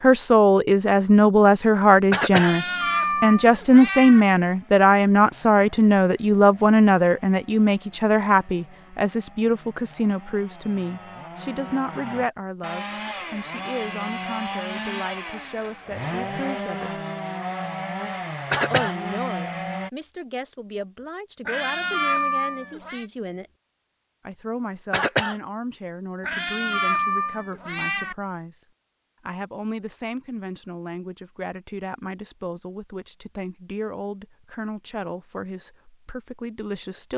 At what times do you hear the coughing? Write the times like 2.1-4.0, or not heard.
2.1-2.5, 18.5-18.9, 24.9-25.4.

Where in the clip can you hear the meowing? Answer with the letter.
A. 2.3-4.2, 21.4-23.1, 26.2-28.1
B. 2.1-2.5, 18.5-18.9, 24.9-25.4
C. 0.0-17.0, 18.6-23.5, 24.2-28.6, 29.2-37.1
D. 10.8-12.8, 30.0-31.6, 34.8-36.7
A.